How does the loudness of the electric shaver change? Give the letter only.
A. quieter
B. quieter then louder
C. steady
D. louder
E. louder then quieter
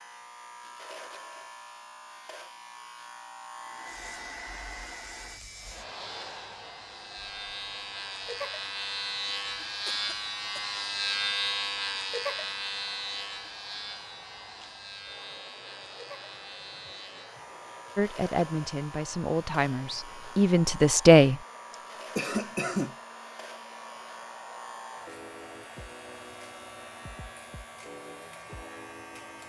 E.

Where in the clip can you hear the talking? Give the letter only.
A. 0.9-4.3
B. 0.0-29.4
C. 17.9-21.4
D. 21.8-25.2
C.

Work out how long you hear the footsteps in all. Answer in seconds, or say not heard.
not heard.